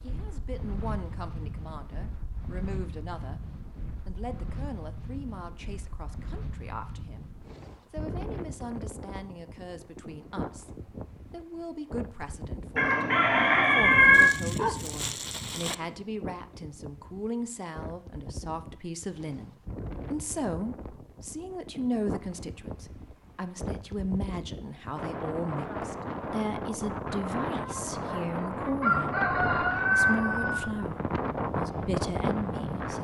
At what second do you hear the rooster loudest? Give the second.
14 s.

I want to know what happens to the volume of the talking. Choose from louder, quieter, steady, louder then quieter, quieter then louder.
louder.